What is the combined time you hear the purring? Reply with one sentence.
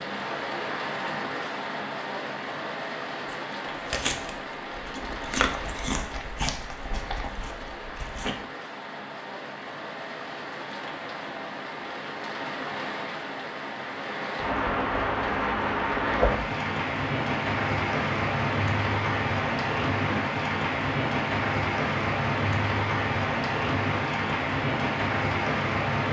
You can't hear the purring here.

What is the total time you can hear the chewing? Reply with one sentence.
The chewing can be heard for 5 seconds in total.